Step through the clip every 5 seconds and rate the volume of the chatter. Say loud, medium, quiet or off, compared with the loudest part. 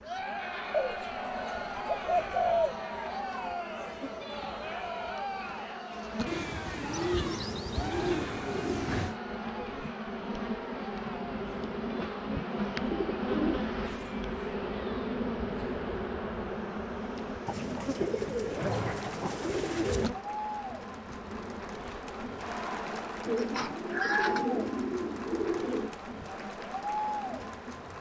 loud, loud, medium, medium, loud, loud.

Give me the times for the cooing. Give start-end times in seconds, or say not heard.
0.7-2.8, 6.2-9.2, 12.8-14.2, 17.4-20.1, 23.2-25.9.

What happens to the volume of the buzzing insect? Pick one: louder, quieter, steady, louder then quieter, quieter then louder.
louder then quieter.